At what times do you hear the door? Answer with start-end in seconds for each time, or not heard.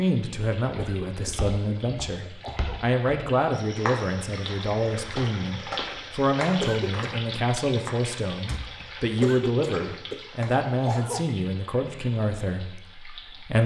8.4-8.9.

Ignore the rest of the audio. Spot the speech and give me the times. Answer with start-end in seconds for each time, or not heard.
0.0-13.6.